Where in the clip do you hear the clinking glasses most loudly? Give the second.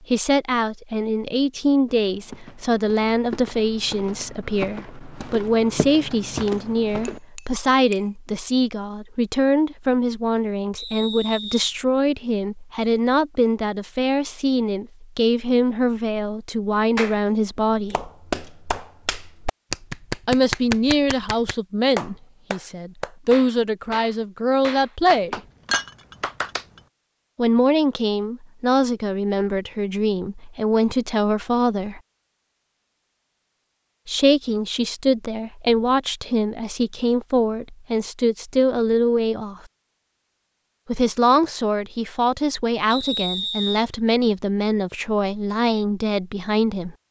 26 s.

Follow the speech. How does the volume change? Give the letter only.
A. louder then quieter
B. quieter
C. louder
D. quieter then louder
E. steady
E.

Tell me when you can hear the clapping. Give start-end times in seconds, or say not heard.
16.9-26.6.